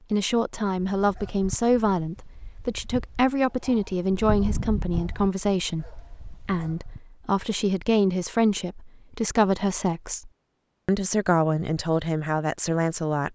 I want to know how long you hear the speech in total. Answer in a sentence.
The speech can be heard for 13 seconds in total.